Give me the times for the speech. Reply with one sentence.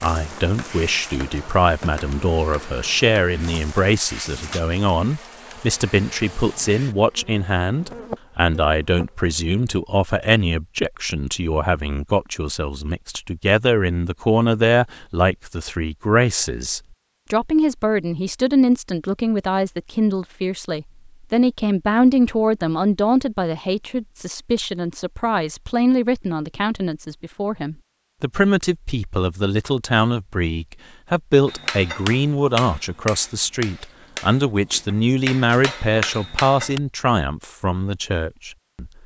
You can hear the speech from 0.0 to 38.9 s.